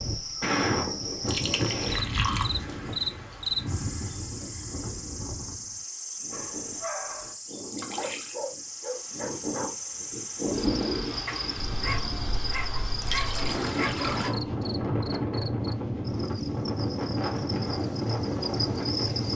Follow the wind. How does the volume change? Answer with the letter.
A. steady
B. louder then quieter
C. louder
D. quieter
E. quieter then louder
E.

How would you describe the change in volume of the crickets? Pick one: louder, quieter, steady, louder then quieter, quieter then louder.
quieter.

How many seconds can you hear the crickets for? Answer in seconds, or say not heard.
19 s.